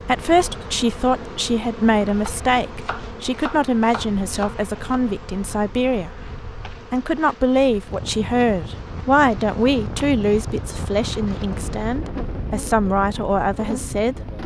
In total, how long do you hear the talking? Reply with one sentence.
The talking can be heard for 13 seconds in total.